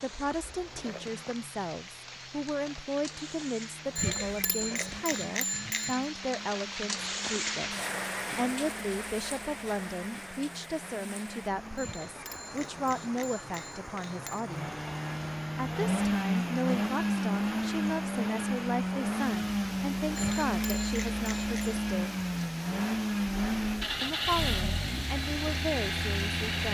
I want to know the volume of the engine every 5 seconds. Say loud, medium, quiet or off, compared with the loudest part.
quiet, quiet, quiet, loud, loud, loud.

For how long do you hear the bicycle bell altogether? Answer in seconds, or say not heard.
6 s.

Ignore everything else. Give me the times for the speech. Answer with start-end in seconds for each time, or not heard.
0.0-14.8, 15.6-22.1, 24.0-26.6.